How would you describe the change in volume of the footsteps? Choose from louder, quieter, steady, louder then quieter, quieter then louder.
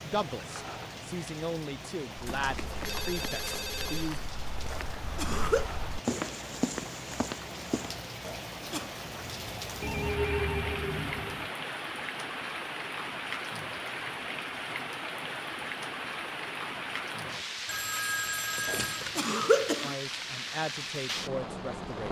louder.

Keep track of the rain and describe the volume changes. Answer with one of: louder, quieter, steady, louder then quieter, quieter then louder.
louder.